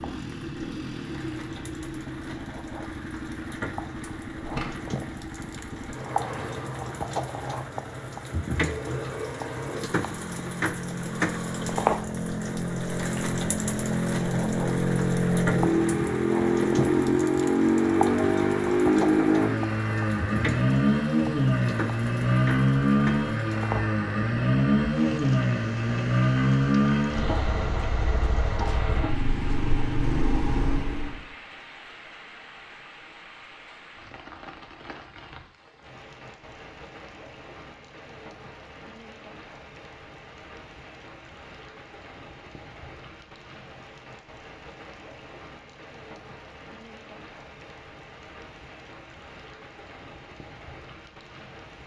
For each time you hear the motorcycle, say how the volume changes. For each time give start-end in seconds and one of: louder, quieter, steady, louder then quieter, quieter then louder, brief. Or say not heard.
0.0-31.2 louder.